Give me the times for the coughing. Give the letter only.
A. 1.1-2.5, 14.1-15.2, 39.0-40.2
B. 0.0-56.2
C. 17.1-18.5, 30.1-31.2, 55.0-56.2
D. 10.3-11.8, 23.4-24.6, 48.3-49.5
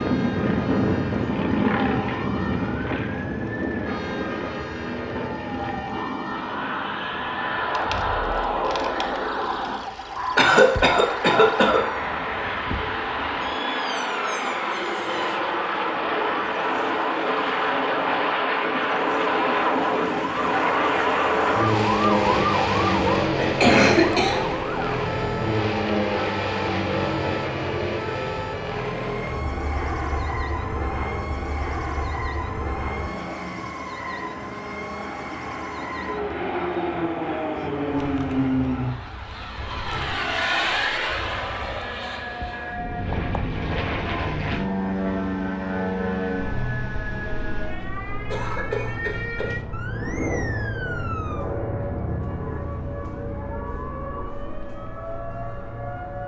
D.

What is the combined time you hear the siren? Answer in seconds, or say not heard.
56 s.